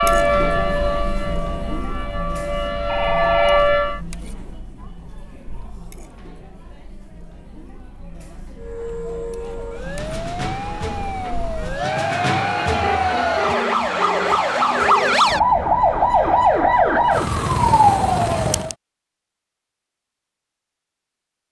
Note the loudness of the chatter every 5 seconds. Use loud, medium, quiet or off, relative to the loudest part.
medium, quiet, loud, off, off.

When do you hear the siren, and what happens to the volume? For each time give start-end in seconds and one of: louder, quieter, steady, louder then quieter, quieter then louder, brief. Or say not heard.
0.0-4.0 quieter then louder
8.6-18.8 louder.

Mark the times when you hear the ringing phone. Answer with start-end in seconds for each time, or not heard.
2.9-4.0, 12.8-15.2.